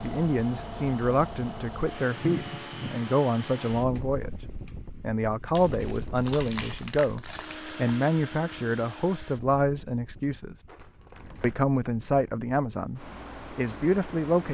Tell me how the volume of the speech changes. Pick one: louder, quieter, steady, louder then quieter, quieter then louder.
steady.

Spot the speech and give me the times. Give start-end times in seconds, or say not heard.
0.0-10.6, 11.4-14.4.